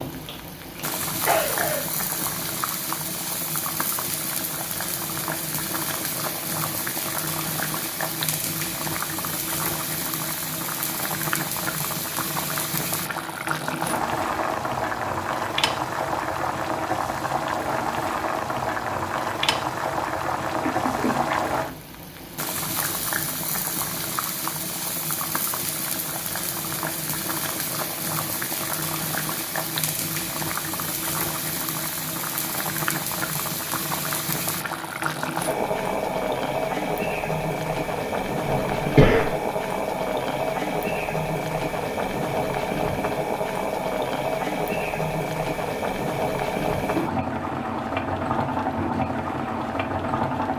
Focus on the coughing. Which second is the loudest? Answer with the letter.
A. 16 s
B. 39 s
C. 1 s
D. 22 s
B.